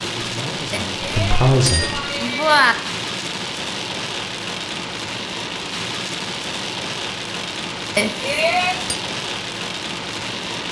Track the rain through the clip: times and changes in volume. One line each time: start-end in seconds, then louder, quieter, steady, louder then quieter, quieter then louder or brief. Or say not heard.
0.0-10.6 steady.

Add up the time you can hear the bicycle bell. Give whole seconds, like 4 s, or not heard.
3 s.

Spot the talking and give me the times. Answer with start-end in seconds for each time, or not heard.
0.0-2.0.